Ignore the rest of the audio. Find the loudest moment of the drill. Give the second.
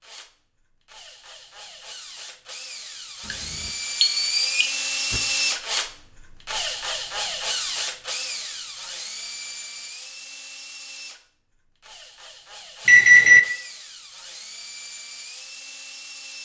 5 s.